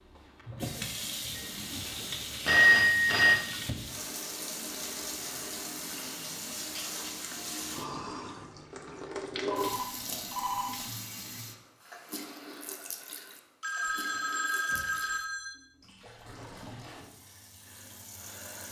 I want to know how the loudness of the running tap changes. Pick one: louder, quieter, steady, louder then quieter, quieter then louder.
quieter.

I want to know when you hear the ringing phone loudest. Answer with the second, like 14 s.
3 s.